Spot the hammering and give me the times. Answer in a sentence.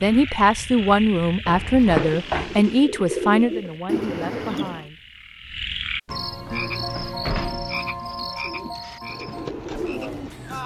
You can't hear the hammering here.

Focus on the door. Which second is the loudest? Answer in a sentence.
The loudest moment of the door is at 2 seconds.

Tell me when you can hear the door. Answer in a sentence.
You can hear the door from 1.4 to 2.8 s and from 6.0 to 7.8 s.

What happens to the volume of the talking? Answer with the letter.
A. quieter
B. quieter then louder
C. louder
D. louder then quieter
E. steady
A.